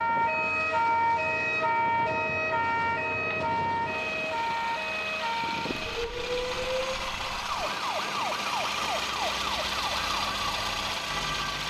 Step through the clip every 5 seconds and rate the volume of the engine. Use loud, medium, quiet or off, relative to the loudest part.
medium, loud, loud.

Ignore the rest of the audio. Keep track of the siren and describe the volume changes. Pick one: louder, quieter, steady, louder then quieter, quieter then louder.
quieter.